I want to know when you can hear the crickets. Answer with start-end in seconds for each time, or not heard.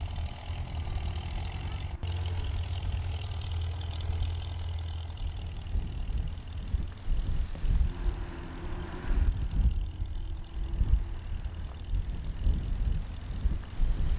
not heard.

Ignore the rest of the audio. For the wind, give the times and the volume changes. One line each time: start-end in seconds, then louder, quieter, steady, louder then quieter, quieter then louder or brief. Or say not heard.
0.0-14.1 louder.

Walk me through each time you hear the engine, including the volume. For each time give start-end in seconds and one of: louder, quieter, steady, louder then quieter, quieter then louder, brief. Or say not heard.
0.0-14.1 quieter.